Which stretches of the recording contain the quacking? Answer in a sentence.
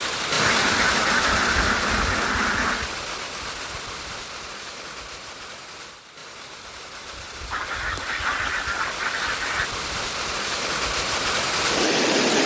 The quacking can be heard from 0.3 to 2.9 s and from 7.5 to 9.7 s.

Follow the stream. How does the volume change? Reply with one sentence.
The loudness of the stream goes down, then up.